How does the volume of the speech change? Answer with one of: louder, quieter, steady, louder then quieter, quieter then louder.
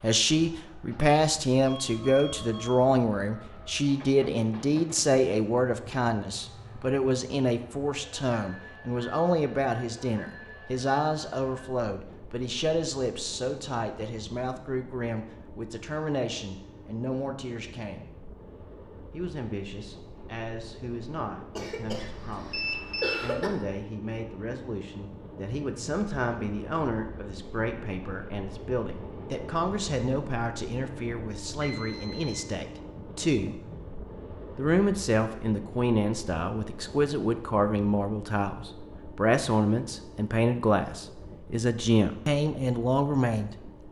quieter then louder.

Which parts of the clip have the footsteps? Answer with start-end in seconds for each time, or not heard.
not heard.